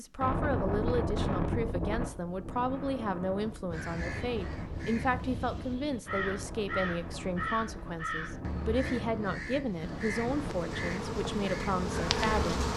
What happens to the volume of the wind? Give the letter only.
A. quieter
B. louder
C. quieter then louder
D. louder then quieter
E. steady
A.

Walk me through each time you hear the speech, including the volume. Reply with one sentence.
The speech can be heard from 0.0 to 12.6 s, at a steady volume.